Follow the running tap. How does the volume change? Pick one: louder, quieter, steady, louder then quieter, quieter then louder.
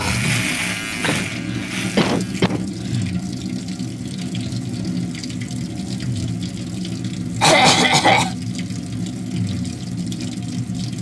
steady.